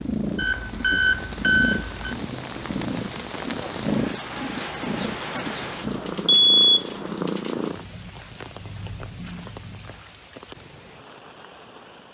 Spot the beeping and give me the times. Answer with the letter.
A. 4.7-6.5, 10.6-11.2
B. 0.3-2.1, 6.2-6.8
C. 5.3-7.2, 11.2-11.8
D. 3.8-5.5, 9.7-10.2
B.